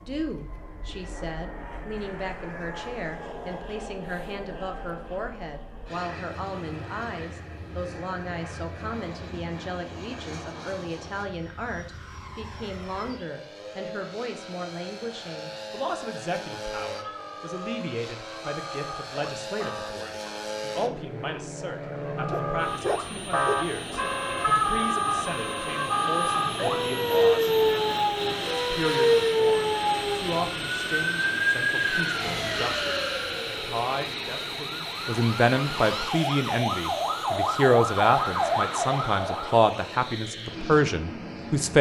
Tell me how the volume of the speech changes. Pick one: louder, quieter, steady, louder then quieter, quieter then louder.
louder.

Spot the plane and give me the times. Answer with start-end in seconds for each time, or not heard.
0.0-41.7.